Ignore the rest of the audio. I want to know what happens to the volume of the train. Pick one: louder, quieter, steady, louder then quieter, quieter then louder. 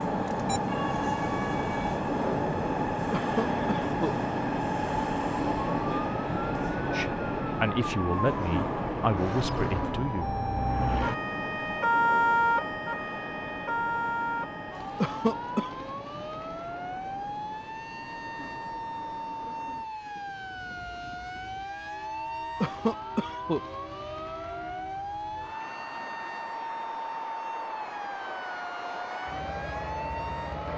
quieter then louder.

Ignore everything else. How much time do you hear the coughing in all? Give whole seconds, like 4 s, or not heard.
3 s.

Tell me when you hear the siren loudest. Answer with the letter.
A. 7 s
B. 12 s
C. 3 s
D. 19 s
B.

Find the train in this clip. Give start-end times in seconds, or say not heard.
0.0-30.7.